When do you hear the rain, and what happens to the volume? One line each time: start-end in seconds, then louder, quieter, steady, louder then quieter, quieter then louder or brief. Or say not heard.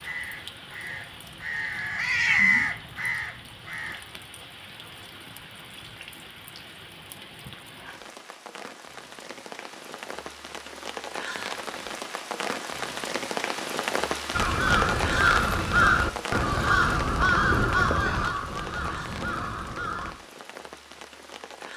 0.0-21.7 louder then quieter.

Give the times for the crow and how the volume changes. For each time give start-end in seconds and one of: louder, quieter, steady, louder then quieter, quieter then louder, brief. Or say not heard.
0.0-4.0 louder then quieter
14.3-20.1 quieter.